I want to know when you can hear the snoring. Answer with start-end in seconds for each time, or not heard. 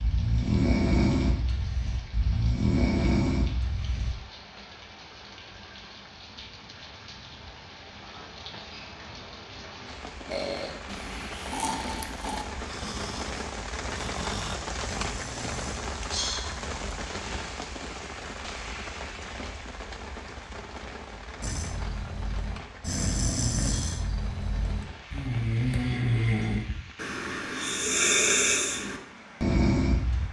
0.0-4.2, 10.2-15.8, 21.4-30.2.